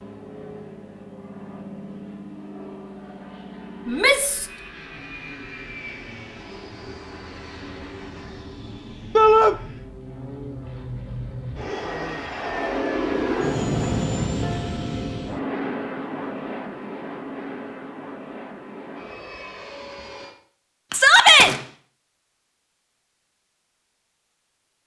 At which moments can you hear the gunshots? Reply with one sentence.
You can hear the gunshots from 20.9 to 21.6 s.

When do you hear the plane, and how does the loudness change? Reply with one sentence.
You can hear the plane from 0.0 to 20.4 s, getting louder then quieter.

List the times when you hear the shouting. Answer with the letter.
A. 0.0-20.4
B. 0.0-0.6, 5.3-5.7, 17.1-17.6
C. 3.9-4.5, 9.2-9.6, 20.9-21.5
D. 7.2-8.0
C.